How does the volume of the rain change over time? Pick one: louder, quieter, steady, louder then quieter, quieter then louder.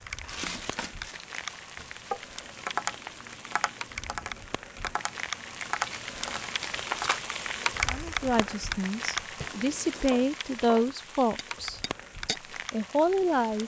louder then quieter.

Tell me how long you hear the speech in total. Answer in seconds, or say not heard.
6 s.